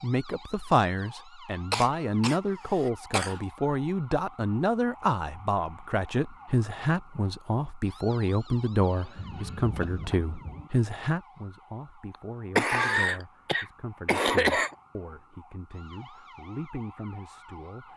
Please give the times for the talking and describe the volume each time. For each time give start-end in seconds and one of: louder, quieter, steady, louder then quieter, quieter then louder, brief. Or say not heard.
0.0-17.9 quieter.